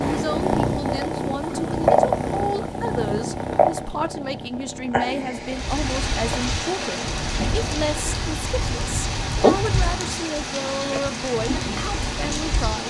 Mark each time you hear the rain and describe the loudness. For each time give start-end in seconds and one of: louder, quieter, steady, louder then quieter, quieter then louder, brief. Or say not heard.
5.3-12.8 steady.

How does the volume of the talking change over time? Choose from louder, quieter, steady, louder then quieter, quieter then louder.
steady.